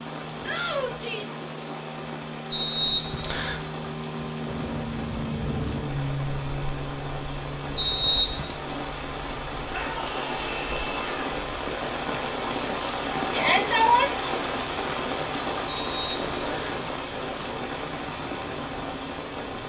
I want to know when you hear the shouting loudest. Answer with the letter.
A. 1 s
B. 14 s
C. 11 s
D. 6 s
B.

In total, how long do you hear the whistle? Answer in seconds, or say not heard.
3 s.